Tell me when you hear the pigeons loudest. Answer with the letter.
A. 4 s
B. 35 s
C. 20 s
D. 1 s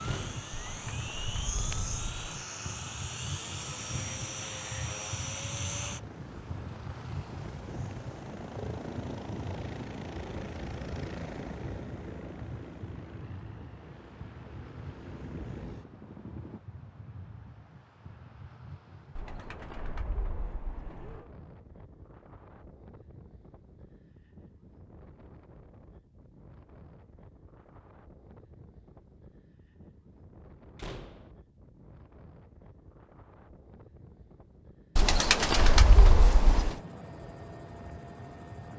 B.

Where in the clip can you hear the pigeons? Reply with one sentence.
The pigeons can be heard from 0.5 to 2.2 s, from 19.1 to 21.2 s and from 35.0 to 36.8 s.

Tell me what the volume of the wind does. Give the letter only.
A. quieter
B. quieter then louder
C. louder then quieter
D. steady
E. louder
A.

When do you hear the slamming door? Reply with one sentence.
You can hear the slamming door from 0.0 to 0.5 s and from 30.8 to 31.3 s.